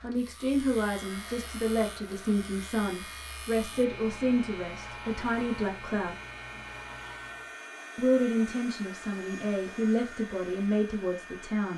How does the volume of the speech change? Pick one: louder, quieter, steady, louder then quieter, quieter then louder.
steady.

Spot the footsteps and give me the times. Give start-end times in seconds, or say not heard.
not heard.